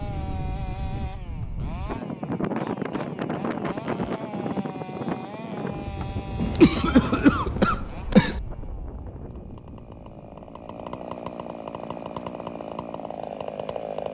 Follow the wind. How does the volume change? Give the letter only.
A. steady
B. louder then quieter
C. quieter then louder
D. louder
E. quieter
E.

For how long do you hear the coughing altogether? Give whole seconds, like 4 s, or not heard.
2 s.